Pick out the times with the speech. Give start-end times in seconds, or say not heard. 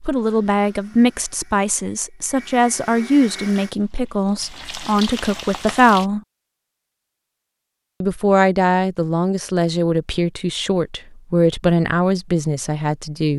0.0-6.2, 8.0-13.3.